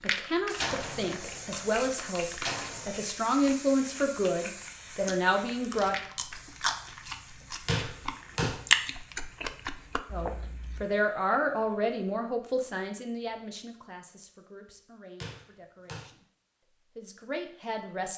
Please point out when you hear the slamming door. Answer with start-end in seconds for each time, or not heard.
0.6-3.0, 7.7-8.6, 15.2-16.1.